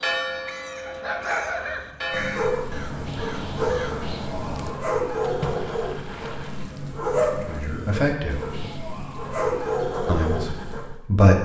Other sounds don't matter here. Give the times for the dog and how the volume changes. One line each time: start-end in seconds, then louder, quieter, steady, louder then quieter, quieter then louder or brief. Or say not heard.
0.8-11.0 steady.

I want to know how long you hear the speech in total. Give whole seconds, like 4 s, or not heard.
2 s.